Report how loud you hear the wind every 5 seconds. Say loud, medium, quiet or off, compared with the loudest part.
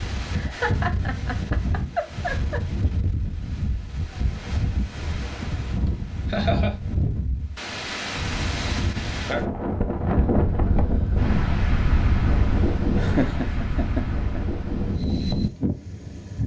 medium, loud, loud, loud.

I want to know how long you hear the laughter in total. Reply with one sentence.
You can hear the laughter for 5 seconds altogether.